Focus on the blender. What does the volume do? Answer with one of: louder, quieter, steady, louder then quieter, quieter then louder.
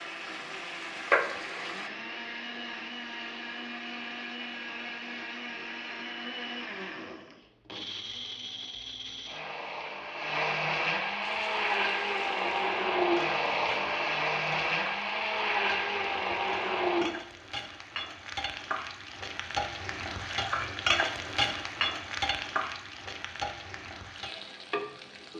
louder.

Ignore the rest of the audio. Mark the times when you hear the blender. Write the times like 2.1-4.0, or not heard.
0.0-17.2.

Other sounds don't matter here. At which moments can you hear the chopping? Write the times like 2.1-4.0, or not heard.
not heard.